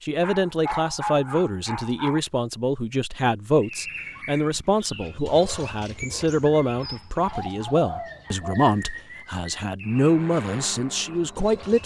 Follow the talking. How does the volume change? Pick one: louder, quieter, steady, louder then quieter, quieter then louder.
steady.